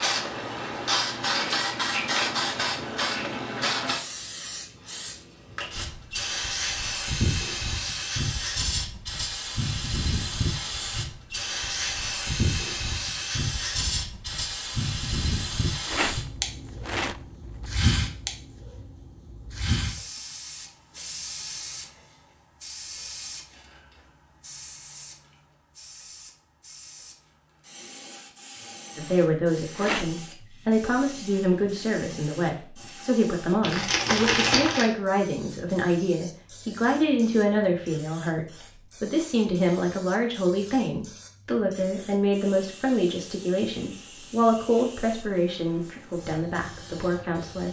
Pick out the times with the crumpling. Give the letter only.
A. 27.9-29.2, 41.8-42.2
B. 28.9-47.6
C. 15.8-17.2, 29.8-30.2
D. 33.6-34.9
D.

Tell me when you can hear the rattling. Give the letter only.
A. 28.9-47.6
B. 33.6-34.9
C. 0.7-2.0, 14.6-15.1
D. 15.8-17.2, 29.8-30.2
D.